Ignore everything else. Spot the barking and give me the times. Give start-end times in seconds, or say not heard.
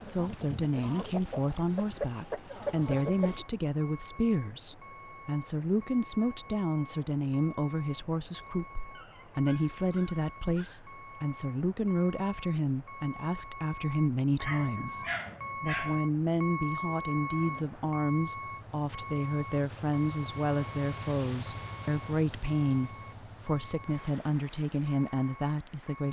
8.9-10.9, 14.4-16.0.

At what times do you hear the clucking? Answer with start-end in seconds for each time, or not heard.
0.0-3.5.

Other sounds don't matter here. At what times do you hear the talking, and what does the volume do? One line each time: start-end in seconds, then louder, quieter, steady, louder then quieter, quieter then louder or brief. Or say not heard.
0.0-26.0 steady.